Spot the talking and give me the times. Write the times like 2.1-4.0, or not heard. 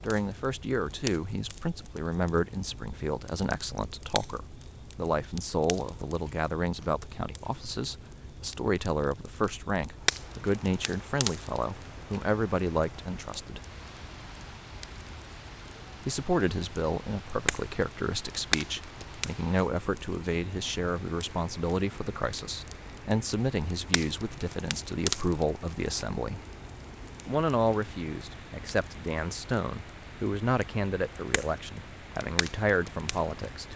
0.0-13.6, 16.1-26.4, 27.2-33.7.